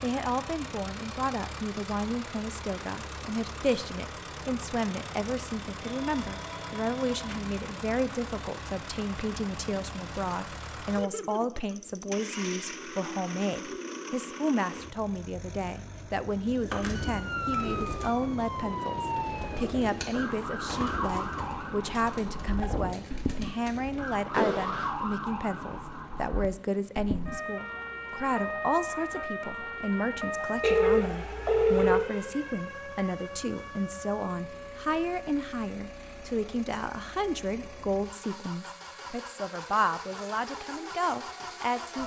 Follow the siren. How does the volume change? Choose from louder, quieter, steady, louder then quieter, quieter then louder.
quieter.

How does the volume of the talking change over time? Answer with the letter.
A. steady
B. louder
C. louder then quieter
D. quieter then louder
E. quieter
A.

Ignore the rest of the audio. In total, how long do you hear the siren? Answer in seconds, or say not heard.
25 s.